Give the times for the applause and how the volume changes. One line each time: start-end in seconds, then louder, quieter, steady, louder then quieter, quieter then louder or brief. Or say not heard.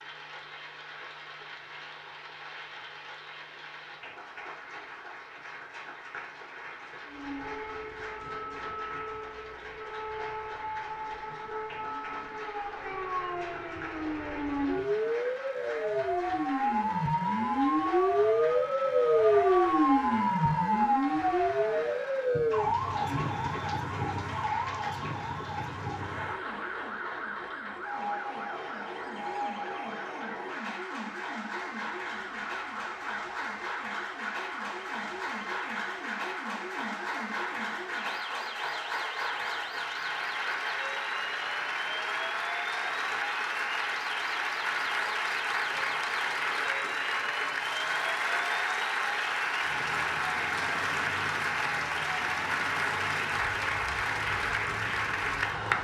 0.0-55.7 louder.